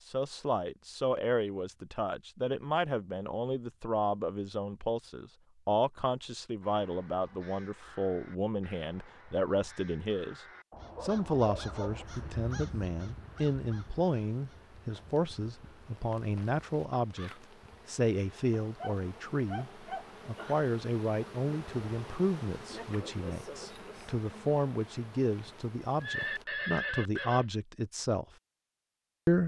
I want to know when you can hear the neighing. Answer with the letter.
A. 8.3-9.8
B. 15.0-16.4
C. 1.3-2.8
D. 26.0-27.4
D.